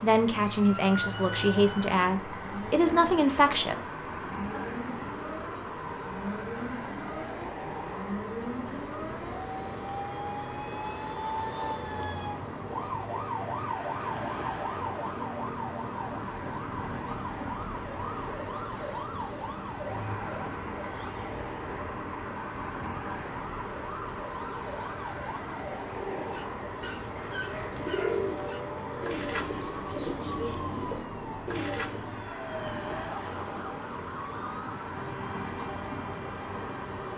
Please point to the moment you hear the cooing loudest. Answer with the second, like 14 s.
28 s.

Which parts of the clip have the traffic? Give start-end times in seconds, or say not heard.
0.0-37.1.